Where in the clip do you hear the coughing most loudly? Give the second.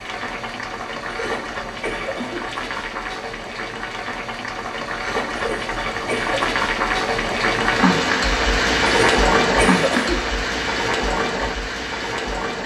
10 s.